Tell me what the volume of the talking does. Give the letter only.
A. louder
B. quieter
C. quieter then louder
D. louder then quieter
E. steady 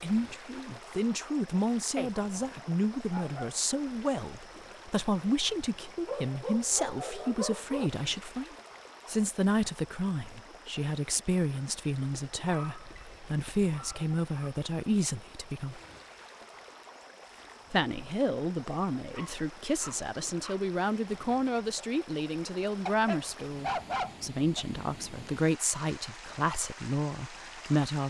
E.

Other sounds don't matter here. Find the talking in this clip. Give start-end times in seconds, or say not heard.
0.0-15.8, 17.7-28.0.